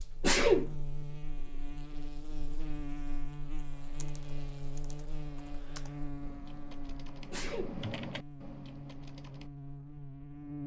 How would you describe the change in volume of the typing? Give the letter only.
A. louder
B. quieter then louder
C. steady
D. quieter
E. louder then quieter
E.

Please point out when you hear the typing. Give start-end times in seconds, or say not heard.
3.7-9.5.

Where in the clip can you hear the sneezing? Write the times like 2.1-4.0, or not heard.
0.2-0.7, 7.3-7.8.